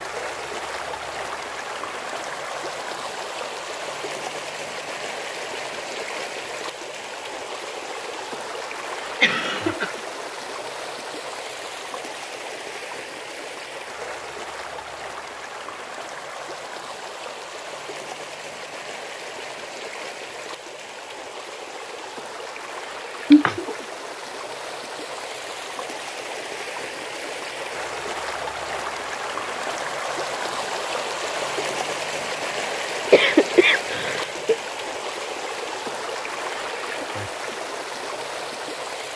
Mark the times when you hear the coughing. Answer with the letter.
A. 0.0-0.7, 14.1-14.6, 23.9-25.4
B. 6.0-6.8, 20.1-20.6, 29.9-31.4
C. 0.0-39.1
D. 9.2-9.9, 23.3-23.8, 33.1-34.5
D.